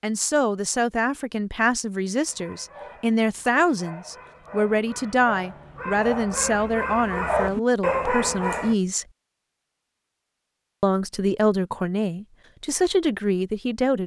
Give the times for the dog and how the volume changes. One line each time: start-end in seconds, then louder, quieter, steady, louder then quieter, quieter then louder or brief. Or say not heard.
2.2-8.8 louder.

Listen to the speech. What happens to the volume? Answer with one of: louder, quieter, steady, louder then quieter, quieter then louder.
steady.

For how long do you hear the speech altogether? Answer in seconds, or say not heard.
12 s.